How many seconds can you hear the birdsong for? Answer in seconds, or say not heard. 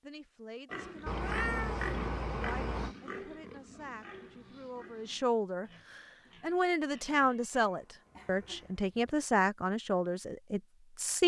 not heard.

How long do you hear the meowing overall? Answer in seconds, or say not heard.
3 s.